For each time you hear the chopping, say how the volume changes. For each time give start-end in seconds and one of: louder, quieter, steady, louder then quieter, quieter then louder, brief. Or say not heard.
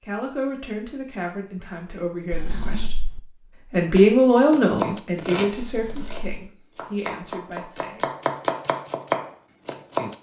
4.0-10.1 quieter then louder.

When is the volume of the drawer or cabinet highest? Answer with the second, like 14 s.
3 s.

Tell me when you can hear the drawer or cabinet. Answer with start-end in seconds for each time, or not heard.
2.3-3.2, 5.6-6.2.